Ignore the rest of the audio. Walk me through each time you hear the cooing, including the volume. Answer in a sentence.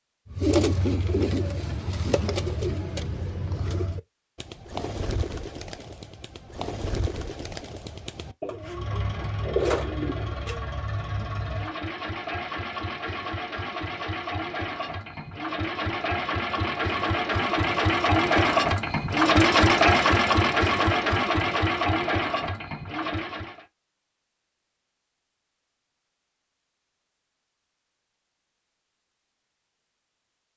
You can hear the cooing from 0.3 to 10.7 s, getting quieter then louder.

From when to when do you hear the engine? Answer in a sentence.
You can hear the engine from 8.4 to 23.6 s.